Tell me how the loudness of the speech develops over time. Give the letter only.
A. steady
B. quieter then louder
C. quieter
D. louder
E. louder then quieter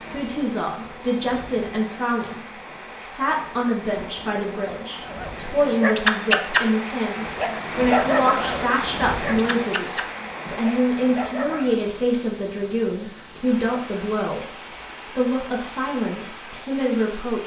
A.